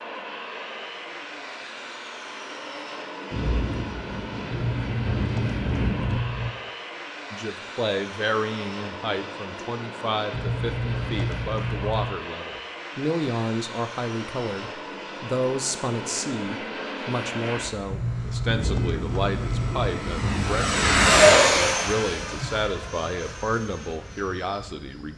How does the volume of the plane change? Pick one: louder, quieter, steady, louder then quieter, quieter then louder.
louder.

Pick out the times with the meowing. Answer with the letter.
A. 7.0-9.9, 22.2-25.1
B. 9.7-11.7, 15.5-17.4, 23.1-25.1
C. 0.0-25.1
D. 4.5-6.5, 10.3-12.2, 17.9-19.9
D.